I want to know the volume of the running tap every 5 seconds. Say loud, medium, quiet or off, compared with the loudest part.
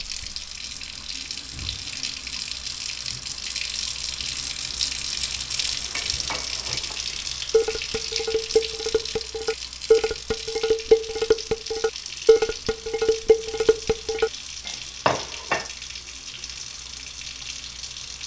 loud, loud, medium, medium.